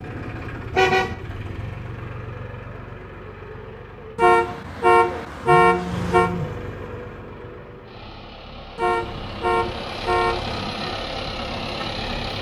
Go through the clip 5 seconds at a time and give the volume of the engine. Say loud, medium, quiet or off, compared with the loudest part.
medium, medium, loud.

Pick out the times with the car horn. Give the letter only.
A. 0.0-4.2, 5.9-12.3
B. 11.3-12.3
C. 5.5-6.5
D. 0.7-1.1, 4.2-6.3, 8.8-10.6
D.